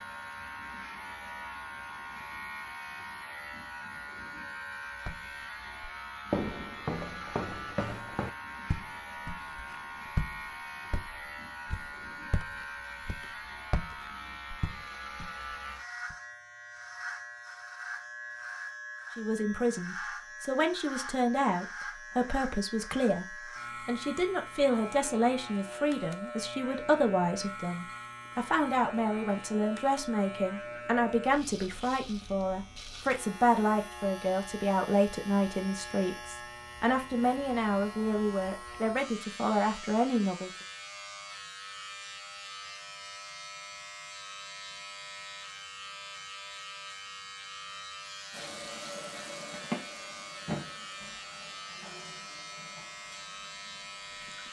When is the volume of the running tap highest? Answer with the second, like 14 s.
50 s.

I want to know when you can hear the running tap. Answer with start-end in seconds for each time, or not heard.
48.3-54.4.